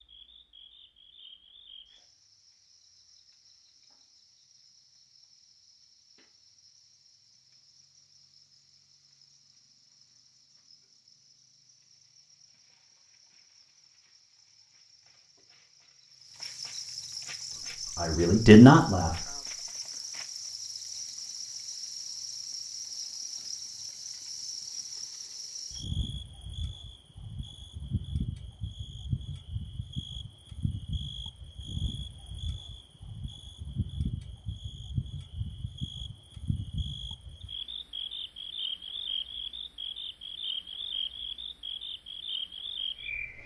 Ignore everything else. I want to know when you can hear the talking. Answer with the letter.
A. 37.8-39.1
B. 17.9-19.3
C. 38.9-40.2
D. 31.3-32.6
B.